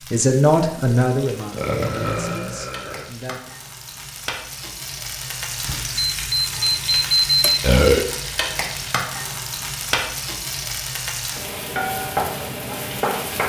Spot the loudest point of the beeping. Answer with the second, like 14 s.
7 s.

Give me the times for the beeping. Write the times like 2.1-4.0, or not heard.
5.7-7.7.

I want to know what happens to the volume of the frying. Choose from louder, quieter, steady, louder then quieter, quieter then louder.
louder.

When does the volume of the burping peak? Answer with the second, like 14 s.
8 s.